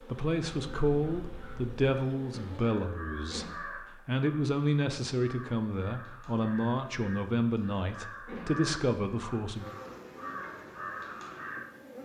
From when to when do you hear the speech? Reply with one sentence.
You can hear the speech from 0.1 to 3.5 s and from 4.0 to 9.7 s.